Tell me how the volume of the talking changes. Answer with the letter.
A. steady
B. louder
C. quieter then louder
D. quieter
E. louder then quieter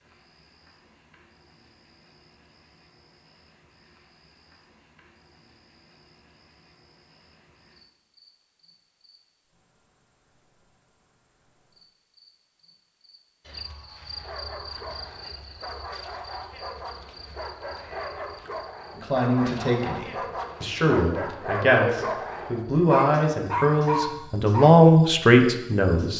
B.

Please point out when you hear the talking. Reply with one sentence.
The talking can be heard from 18.9 to 26.1 s.